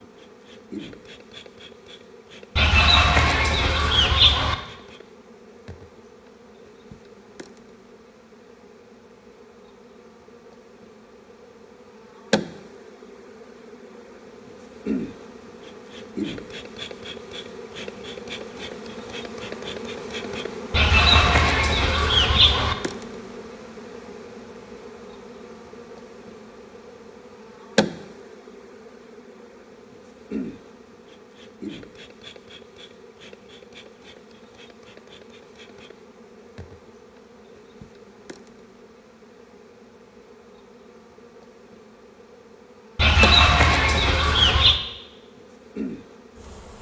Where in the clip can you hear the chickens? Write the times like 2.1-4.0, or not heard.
2.5-4.5, 20.7-22.8, 43.0-44.8.